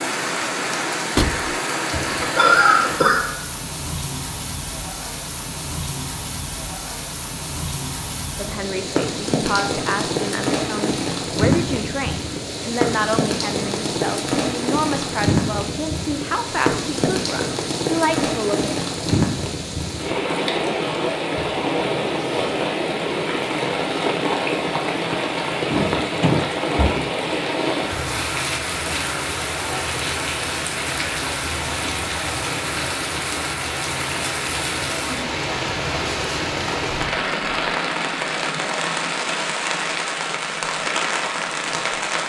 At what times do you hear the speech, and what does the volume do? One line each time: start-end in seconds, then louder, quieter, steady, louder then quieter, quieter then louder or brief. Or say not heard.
8.3-18.8 steady.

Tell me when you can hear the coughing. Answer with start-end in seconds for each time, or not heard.
1.9-3.3.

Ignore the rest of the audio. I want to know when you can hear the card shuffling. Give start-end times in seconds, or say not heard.
not heard.